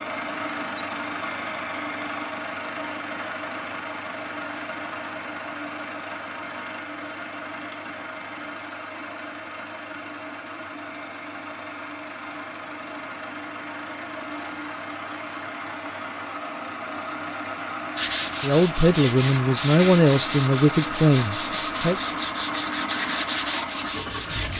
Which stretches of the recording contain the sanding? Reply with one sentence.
You can hear the sanding from 17.9 to 24.5 s.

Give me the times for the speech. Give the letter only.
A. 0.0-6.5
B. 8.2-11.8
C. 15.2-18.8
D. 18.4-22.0
D.